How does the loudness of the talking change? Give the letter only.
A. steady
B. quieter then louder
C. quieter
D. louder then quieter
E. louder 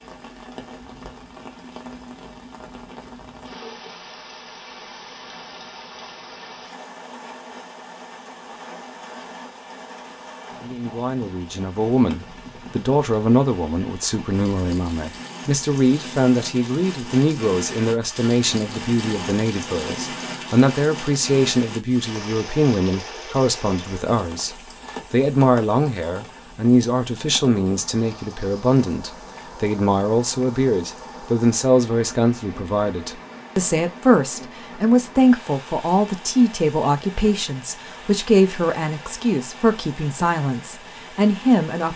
A.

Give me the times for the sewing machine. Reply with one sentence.
The sewing machine can't be heard in this clip.